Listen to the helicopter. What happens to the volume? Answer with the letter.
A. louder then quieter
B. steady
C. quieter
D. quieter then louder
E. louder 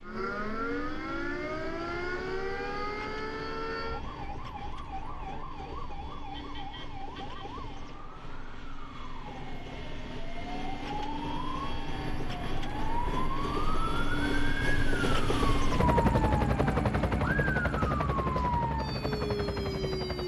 E.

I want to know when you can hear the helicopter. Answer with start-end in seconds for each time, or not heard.
0.0-20.2.